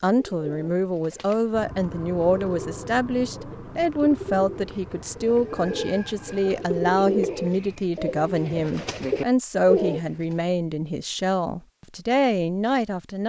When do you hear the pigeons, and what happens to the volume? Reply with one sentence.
The pigeons can be heard from 0.0 to 10.1 s, getting louder.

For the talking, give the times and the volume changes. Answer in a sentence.
The talking can be heard from 0.0 to 13.2 s, at a steady volume.